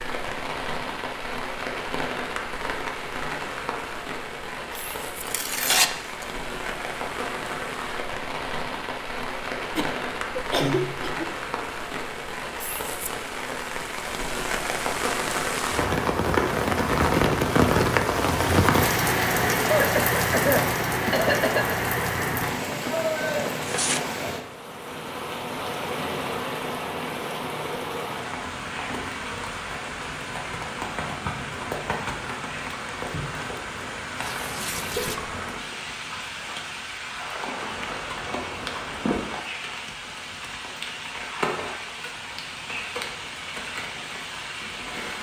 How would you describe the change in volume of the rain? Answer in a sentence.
The volume of the rain goes up, then down.